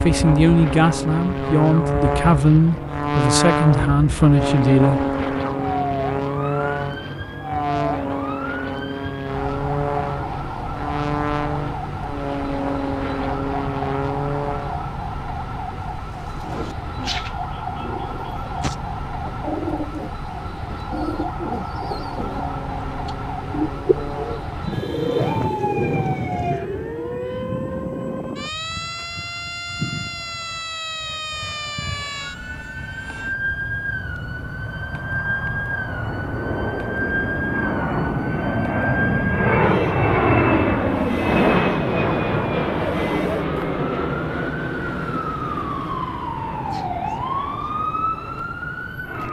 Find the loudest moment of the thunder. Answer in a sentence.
The volume of the thunder peaks at 25 seconds.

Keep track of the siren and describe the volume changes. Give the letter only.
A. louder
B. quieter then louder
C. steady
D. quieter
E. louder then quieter
C.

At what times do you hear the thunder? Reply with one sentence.
The thunder can be heard from 24.6 to 26.6 s.